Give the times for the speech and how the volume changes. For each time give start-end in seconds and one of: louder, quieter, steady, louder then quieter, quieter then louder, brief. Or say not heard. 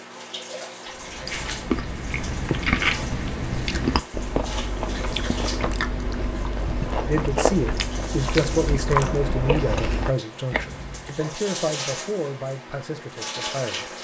7.0-13.9 quieter.